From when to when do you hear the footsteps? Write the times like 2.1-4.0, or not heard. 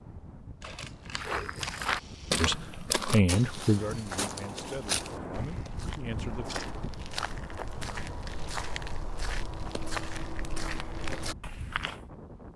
1.1-12.0.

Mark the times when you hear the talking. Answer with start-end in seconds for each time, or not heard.
2.4-6.6.